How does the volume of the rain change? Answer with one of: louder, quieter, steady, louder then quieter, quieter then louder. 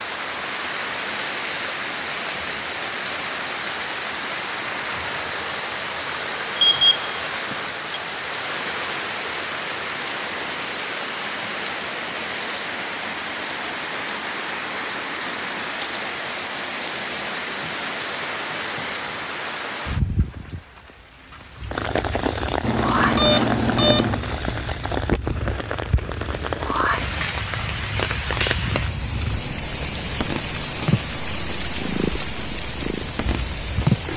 steady.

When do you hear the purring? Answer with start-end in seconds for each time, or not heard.
21.6-34.1.